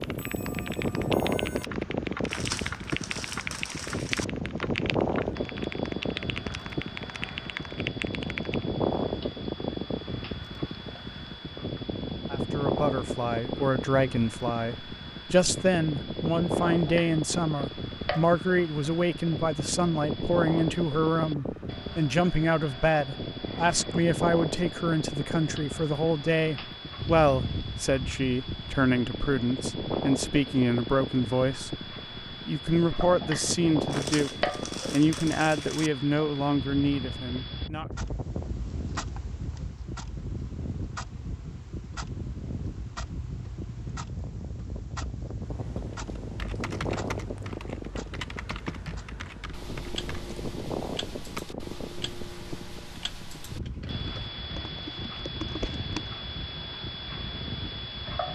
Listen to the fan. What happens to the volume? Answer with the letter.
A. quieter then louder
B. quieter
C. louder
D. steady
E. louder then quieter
B.